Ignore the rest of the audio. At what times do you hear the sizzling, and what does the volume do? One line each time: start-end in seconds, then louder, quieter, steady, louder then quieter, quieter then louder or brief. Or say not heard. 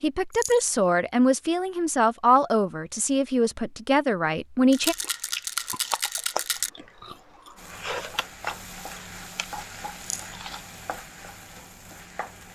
7.5-12.5 quieter.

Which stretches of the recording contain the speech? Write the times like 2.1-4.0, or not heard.
0.0-5.0.